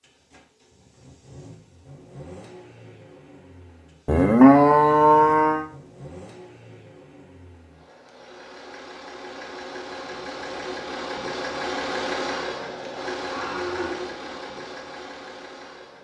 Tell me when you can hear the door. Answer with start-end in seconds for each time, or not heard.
not heard.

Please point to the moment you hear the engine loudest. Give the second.
12 s.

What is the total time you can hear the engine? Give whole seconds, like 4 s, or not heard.
16 s.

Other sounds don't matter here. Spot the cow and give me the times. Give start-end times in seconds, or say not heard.
4.0-5.7, 13.2-14.2.